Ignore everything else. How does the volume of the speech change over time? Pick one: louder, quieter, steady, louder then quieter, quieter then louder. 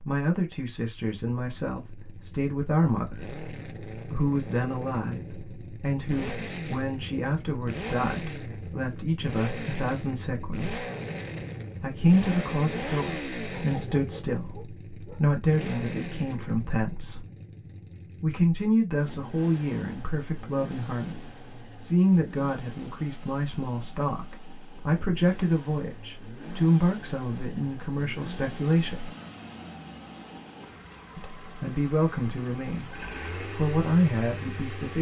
steady.